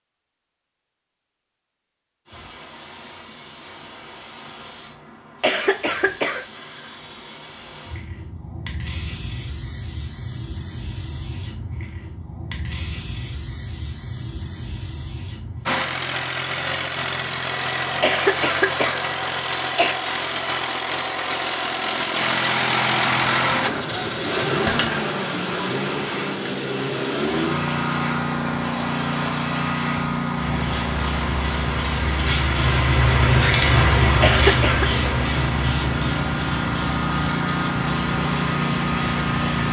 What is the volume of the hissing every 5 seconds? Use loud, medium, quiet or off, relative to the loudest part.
quiet, quiet, quiet, quiet, medium, medium, loud, medium.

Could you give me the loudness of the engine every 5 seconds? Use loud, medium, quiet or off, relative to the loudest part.
off, off, off, loud, loud, loud, medium, loud.